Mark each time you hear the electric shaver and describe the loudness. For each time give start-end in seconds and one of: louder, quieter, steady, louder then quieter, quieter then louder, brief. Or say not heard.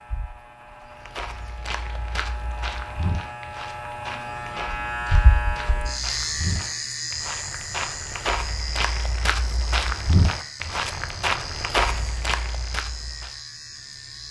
0.0-14.2 louder then quieter.